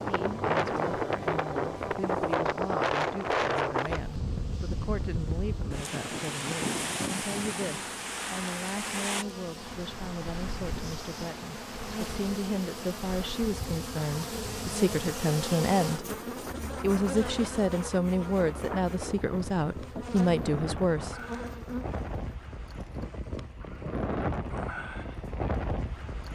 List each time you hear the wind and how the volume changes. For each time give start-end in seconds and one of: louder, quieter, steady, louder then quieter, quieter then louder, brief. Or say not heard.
0.0-26.2 quieter then louder.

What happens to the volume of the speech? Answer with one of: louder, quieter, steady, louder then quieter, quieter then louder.
louder.